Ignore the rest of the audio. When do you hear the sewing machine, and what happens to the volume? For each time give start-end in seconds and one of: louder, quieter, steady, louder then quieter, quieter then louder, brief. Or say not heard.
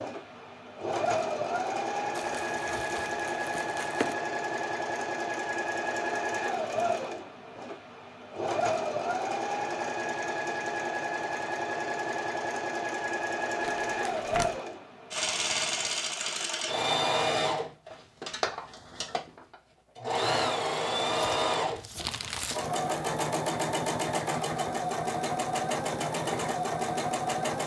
0.0-27.6 steady.